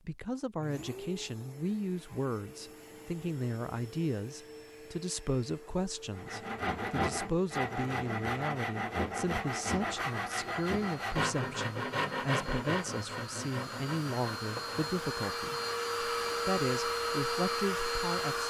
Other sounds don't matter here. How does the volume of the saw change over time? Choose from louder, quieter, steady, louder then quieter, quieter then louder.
quieter.